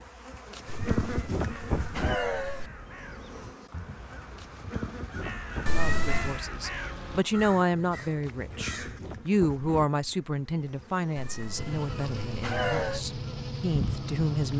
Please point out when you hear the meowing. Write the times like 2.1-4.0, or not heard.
0.7-2.7, 5.7-6.4, 11.2-13.1.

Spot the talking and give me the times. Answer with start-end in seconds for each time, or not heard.
5.7-14.5.